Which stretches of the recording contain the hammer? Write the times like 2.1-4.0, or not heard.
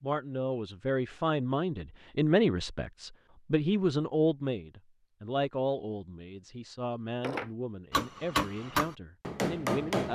7.2-10.1.